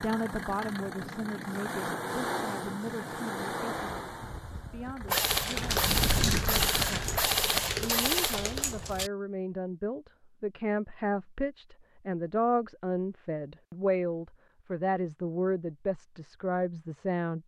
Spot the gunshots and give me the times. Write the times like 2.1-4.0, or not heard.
5.0-9.1.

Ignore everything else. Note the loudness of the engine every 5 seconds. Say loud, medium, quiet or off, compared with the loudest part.
loud, loud, off, off.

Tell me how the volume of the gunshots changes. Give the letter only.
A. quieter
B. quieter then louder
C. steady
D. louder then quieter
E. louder
C.